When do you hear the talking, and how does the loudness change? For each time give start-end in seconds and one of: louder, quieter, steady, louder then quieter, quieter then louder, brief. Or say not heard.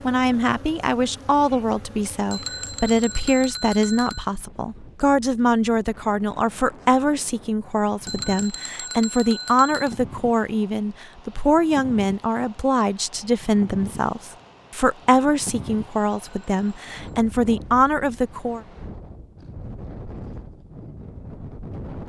0.0-18.6 steady.